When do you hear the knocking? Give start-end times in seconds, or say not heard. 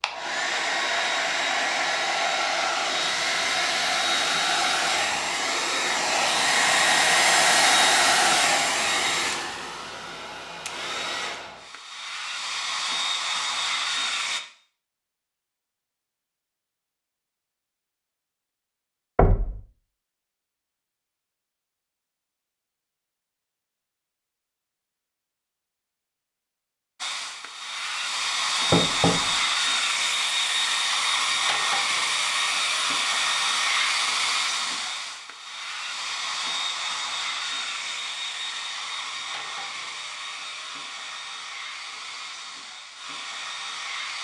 19.1-19.6, 28.7-29.4.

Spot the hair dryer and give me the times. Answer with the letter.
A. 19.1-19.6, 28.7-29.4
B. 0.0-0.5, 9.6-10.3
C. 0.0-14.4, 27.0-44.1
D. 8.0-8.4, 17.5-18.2
C.